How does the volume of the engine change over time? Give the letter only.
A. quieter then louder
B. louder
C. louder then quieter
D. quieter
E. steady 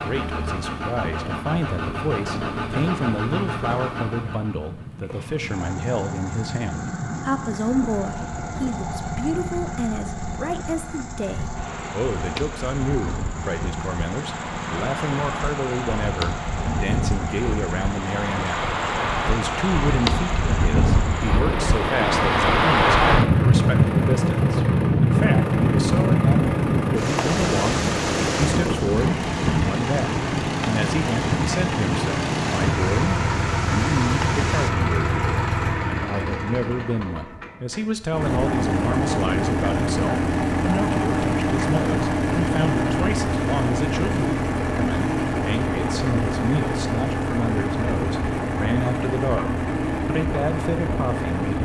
B.